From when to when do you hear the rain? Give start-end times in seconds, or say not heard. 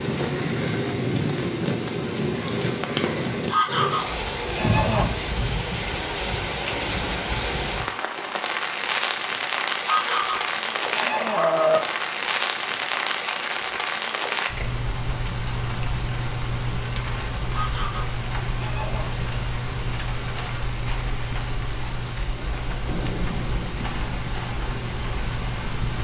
0.0-26.0.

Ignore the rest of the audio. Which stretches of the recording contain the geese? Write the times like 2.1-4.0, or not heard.
3.5-5.0, 9.8-11.8, 17.5-19.1.